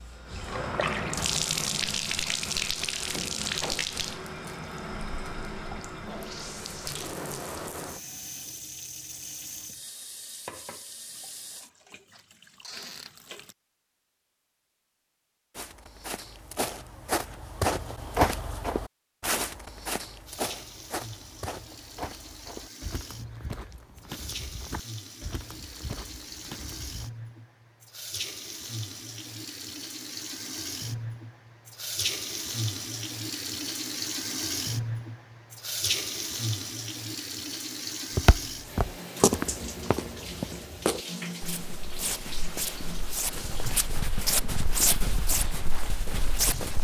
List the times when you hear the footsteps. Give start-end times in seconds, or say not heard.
15.6-27.1, 38.1-46.7.